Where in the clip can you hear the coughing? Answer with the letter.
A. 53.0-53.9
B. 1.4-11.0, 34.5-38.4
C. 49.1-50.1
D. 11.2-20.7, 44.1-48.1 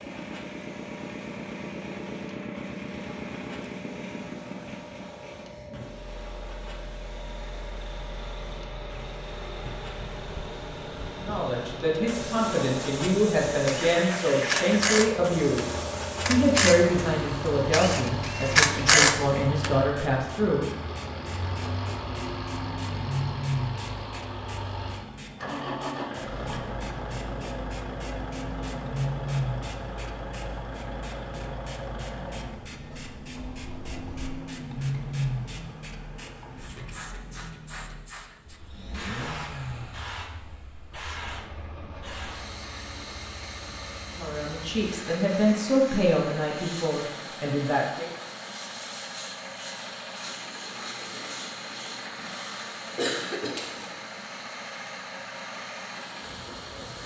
A.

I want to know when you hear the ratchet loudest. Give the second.
19 s.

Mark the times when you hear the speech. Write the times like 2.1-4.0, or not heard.
11.2-20.7, 44.1-48.1.